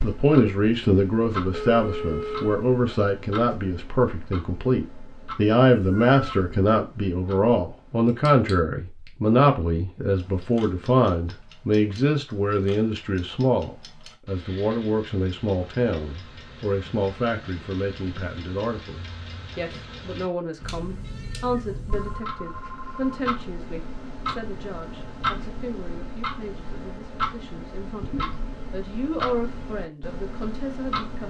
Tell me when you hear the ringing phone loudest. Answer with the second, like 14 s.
2 s.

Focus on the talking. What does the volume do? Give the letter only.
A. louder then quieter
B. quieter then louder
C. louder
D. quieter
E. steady
D.